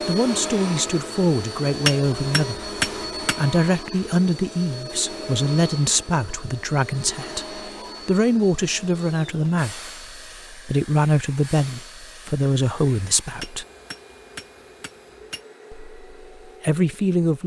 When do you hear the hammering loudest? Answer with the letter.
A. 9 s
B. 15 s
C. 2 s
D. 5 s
C.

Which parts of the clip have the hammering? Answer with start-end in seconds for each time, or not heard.
1.9-3.5, 13.4-15.4.